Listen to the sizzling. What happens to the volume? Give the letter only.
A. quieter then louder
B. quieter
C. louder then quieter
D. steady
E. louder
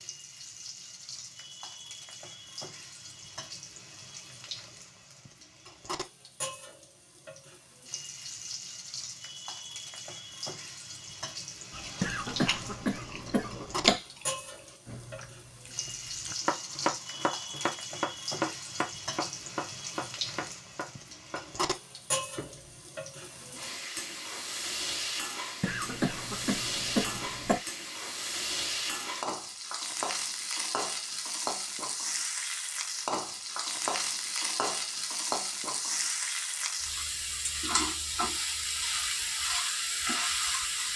E.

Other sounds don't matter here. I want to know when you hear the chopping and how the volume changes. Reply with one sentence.
You can hear the chopping from 16.4 to 22.9 s, getting quieter.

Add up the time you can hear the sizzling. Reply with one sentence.
You can hear the sizzling for 41 seconds altogether.